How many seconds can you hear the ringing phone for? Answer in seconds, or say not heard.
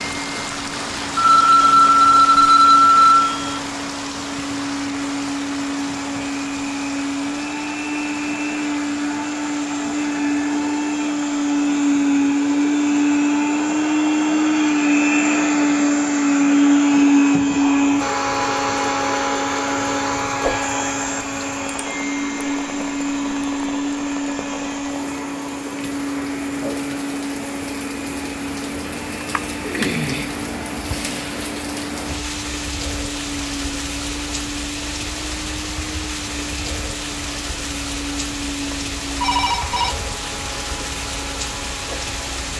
4 s.